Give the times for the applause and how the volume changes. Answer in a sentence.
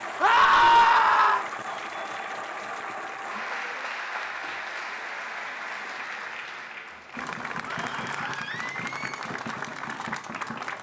You can hear the applause from 0.0 to 10.7 s, at a steady volume.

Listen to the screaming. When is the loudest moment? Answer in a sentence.
The loudest moment of the screaming is at 1 second.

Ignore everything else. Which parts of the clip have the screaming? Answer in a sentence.
You can hear the screaming from 0.2 to 1.4 s and from 7.7 to 9.2 s.